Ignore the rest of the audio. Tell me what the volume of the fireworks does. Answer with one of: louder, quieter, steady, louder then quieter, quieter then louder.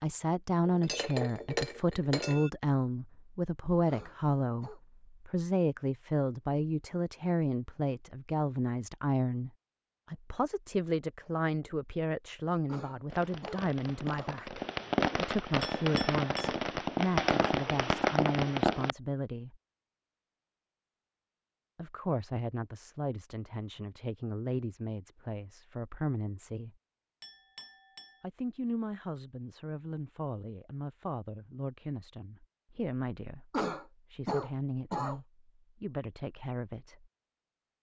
louder.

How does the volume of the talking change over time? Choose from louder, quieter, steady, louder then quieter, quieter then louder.
quieter.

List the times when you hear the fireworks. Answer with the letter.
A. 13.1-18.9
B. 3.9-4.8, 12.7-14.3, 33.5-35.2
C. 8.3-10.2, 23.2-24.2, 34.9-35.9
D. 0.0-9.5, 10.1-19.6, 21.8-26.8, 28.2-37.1
A.